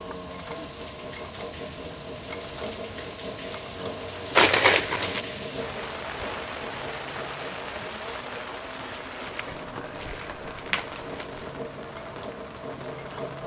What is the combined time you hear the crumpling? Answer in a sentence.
You can hear the crumpling for 3 seconds altogether.